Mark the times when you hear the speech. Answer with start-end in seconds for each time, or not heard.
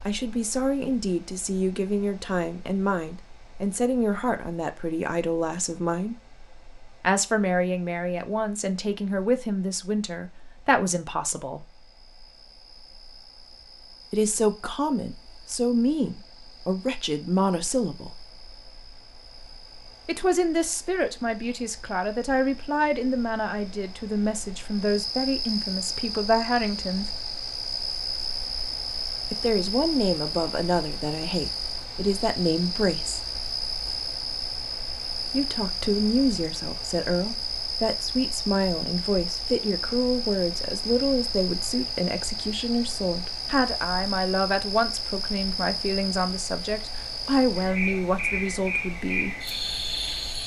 0.1-6.2, 7.0-11.7, 14.1-18.1, 20.1-27.1, 29.3-33.2, 35.3-49.4.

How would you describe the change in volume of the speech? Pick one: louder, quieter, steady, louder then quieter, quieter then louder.
steady.